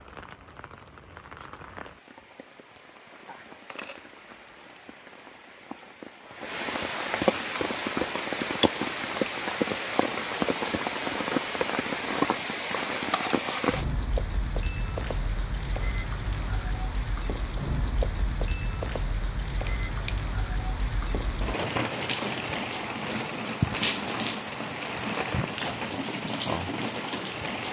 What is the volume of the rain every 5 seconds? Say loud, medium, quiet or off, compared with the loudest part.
quiet, loud, loud, medium, loud, loud.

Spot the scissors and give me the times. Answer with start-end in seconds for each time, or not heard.
3.6-4.6, 13.0-13.8, 19.6-20.3.